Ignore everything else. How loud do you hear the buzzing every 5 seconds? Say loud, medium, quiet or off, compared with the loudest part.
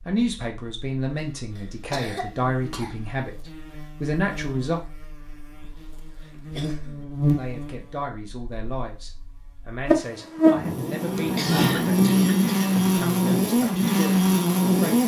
quiet, medium, loud.